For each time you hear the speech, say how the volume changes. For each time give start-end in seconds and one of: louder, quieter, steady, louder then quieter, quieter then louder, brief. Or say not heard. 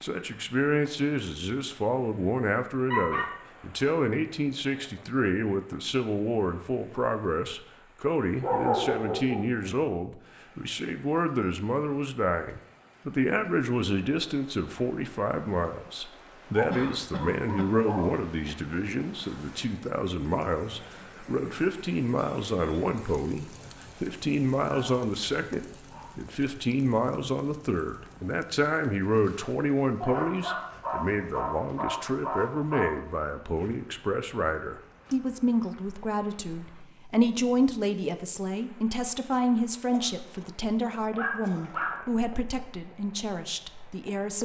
0.0-44.4 steady.